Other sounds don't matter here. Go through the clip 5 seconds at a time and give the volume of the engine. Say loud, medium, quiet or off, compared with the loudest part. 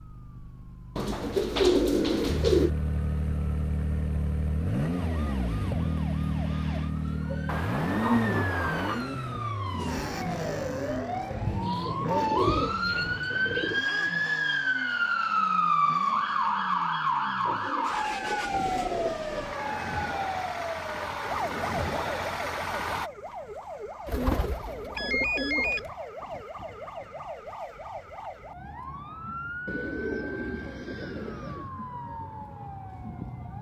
loud, loud, medium, medium, loud, off, off.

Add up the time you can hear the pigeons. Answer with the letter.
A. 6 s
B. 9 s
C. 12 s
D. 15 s
C.